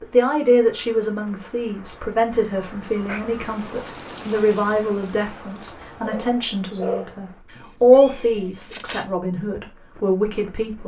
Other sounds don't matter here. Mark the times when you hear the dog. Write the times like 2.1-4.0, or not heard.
6.0-7.2.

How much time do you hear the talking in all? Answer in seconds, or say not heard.
11 s.